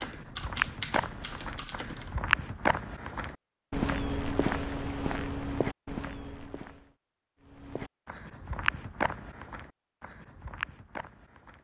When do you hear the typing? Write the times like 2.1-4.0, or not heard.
0.0-2.2.